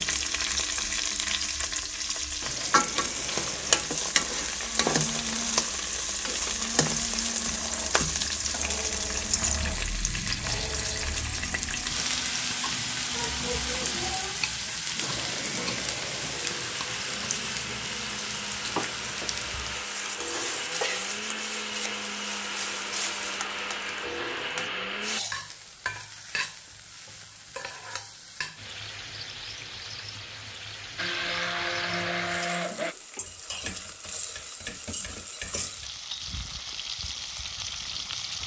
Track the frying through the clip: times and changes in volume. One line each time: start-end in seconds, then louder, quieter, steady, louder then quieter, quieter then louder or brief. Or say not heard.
0.0-38.4 quieter.